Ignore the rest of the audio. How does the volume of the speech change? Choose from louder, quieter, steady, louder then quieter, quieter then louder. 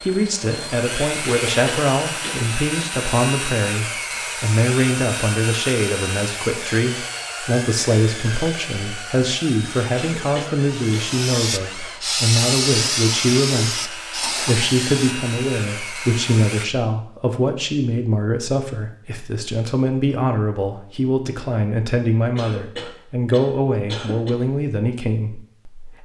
steady.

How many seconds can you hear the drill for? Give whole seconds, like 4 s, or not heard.
17 s.